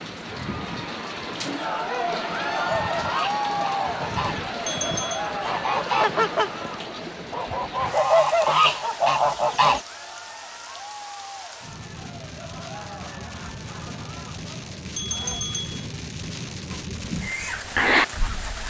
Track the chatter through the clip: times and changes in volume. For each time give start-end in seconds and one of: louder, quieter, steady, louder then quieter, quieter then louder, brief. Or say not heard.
0.1-15.4 quieter.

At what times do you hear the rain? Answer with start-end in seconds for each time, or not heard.
0.0-18.6.